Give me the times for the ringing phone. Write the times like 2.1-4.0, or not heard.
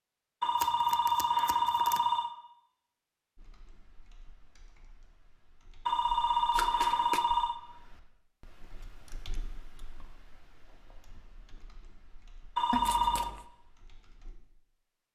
0.4-2.3, 5.8-7.6, 12.6-13.3.